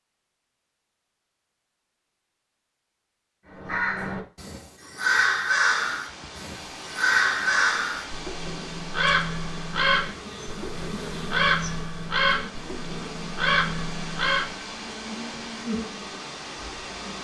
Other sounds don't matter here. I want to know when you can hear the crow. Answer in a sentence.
The crow can be heard from 3.5 to 14.6 s.